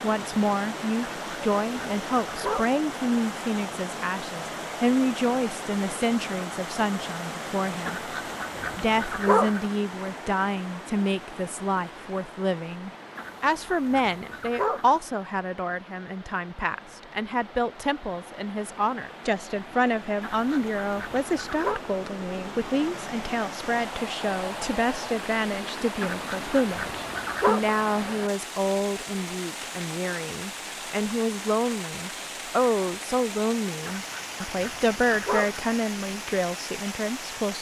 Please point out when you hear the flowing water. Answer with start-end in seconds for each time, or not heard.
0.0-37.5.